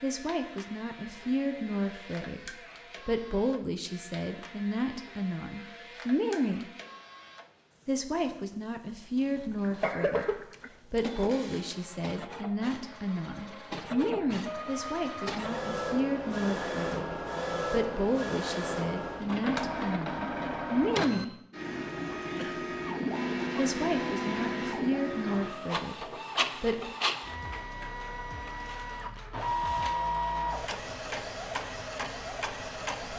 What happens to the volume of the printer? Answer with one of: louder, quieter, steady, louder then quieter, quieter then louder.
louder.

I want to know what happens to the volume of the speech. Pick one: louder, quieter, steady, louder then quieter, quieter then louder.
steady.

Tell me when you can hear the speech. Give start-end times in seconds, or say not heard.
0.0-6.7, 7.8-21.4, 23.6-26.9.